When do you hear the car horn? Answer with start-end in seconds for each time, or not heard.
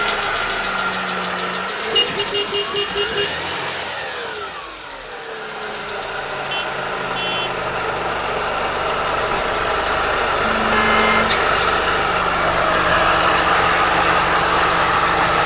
1.9-3.4, 6.5-7.5, 10.4-11.4.